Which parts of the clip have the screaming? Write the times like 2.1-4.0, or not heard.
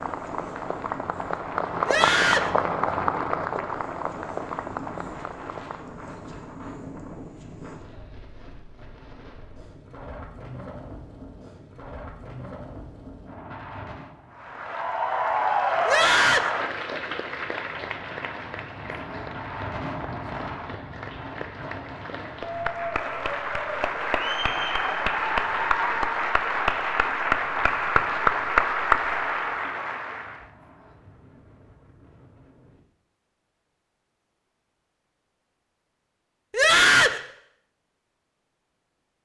1.9-2.5, 15.8-16.5, 36.5-37.2.